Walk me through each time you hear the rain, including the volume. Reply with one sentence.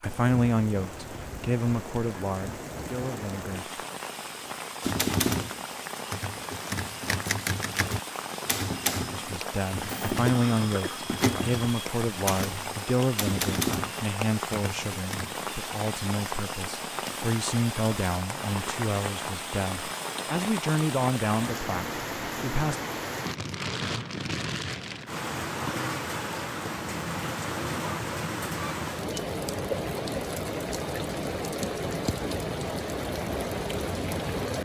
You can hear the rain from 0.0 to 34.6 s, getting louder.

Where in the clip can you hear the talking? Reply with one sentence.
You can hear the talking from 0.0 to 3.7 s and from 9.1 to 22.8 s.